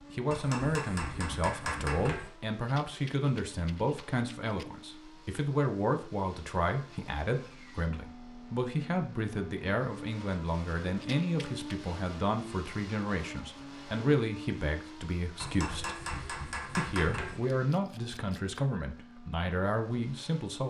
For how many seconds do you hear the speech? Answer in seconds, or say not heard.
20 s.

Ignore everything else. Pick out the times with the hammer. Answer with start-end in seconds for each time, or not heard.
0.3-2.3, 15.3-17.4.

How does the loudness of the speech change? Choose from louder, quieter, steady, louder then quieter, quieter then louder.
steady.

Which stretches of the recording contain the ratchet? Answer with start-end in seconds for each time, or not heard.
not heard.